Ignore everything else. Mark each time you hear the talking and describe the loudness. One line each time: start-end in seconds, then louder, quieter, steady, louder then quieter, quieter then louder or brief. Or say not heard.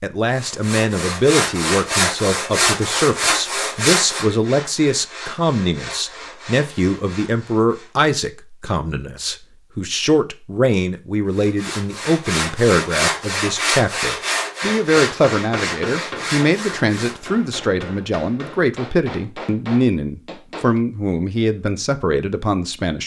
0.0-23.0 steady.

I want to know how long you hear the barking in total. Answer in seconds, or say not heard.
not heard.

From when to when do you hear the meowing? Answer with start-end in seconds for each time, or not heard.
not heard.